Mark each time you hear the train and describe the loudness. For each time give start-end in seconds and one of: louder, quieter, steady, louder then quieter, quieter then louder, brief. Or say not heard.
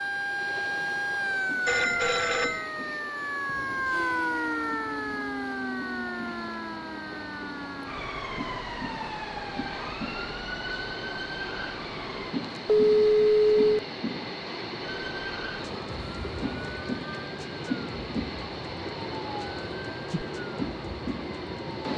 0.0-21.9 louder.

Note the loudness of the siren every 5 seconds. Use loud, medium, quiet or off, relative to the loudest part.
loud, medium, medium, medium, quiet.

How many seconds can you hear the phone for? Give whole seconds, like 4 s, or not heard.
2 s.